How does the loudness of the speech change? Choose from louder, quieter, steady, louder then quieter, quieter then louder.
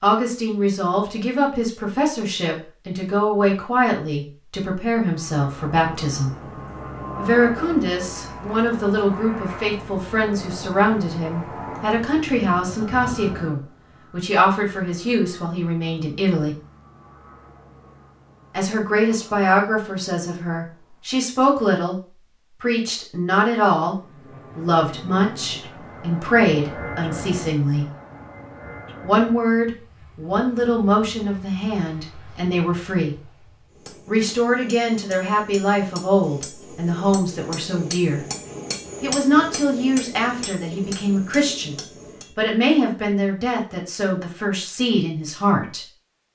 steady.